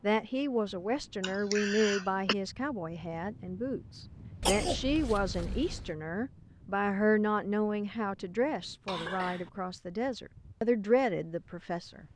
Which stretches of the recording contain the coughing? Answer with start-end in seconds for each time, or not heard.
1.2-2.4, 4.4-5.9, 8.8-9.5.